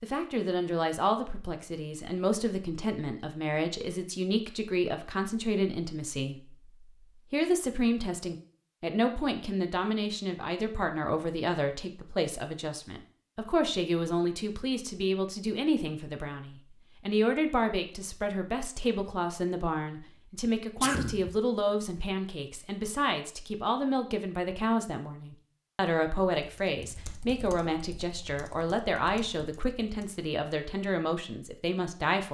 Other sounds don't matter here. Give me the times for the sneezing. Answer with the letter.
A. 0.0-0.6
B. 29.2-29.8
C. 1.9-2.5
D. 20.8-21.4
D.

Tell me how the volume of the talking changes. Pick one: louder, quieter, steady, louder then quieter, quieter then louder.
steady.